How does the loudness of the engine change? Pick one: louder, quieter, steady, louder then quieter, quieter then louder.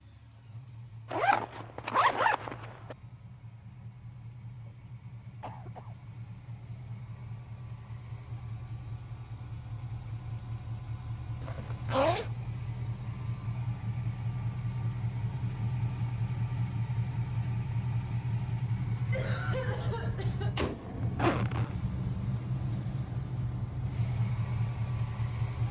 louder.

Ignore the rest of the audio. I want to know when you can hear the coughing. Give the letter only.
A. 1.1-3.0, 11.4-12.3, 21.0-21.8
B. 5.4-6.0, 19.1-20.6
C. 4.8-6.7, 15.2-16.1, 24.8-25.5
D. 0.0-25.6
B.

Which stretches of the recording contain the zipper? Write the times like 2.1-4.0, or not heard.
1.1-3.0, 11.4-12.3, 21.0-21.8.